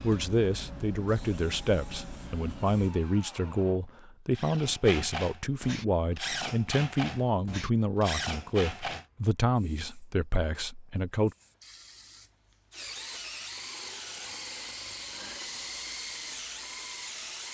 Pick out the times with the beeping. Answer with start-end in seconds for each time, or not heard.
not heard.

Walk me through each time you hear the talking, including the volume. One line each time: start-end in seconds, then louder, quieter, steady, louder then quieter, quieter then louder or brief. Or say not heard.
0.0-11.3 steady.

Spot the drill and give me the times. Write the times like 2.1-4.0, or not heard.
0.0-9.1, 12.7-17.5.